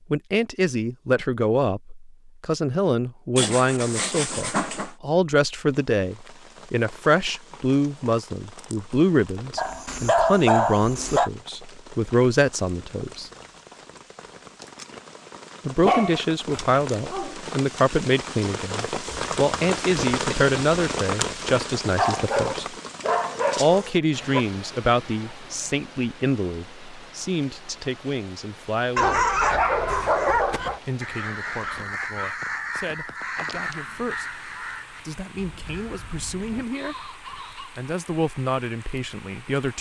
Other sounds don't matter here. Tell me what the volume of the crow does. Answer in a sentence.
The volume of the crow goes down.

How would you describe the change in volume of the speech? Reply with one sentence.
The volume of the speech goes down.